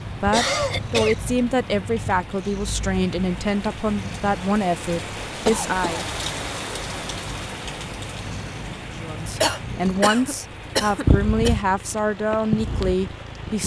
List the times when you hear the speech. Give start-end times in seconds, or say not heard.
0.2-6.0, 8.9-13.6.